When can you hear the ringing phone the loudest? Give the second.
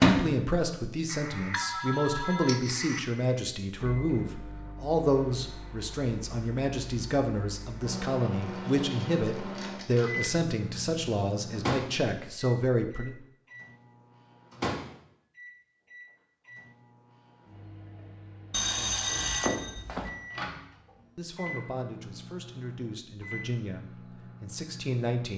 19 s.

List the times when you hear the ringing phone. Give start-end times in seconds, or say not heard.
1.1-3.0, 18.5-20.1.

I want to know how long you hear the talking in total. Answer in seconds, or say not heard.
18 s.